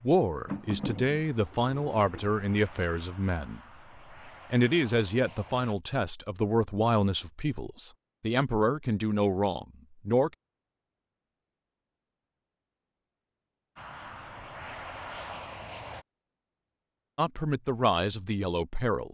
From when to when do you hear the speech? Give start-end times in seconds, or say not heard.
0.0-3.6, 4.5-10.3, 17.1-19.0.